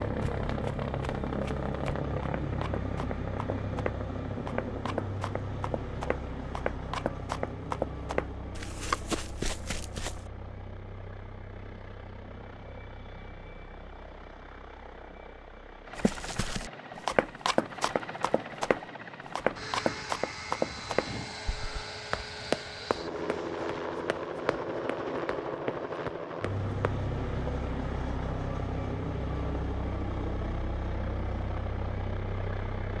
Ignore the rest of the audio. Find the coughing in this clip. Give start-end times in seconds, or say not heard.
not heard.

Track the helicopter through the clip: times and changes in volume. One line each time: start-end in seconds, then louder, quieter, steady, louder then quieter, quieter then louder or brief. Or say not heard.
0.0-32.9 quieter then louder.